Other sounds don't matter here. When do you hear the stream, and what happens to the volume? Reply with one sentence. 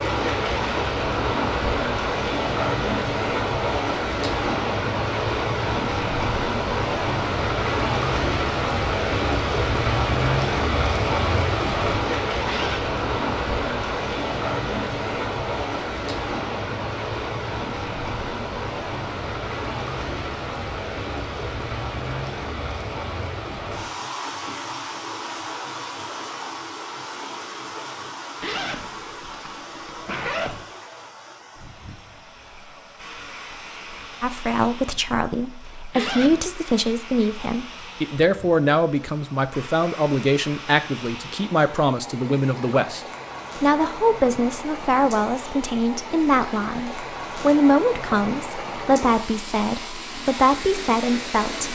The stream can be heard from 0.0 to 51.7 s, getting quieter then louder.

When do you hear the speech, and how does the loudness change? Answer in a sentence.
You can hear the speech from 34.2 to 51.7 s, at a steady volume.